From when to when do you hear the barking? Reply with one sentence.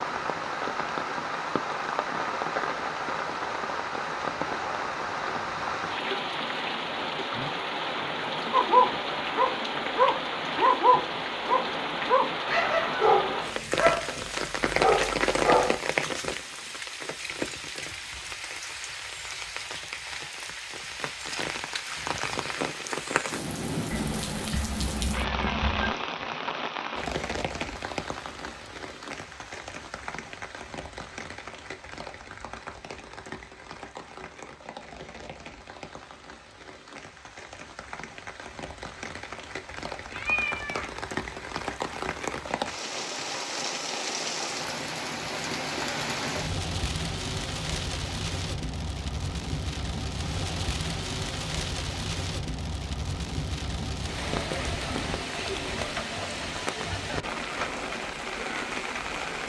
You can hear the barking from 8.5 to 15.8 s.